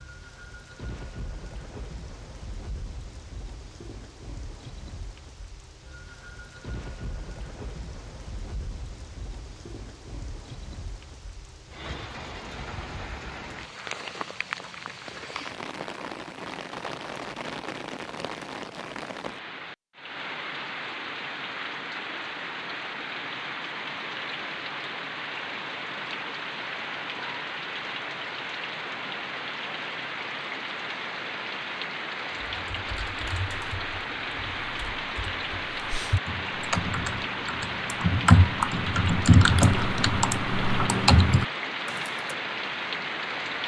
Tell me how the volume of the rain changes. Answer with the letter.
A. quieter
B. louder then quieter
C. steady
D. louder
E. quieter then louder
D.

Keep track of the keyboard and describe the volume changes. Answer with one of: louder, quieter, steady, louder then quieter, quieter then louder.
louder.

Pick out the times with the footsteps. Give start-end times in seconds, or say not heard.
not heard.